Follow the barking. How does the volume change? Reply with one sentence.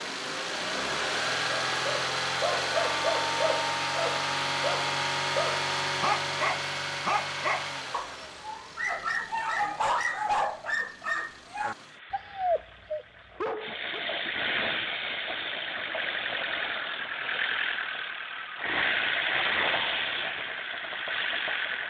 The volume of the barking stays about the same.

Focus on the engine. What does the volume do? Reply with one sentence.
The volume of the engine goes down, then up.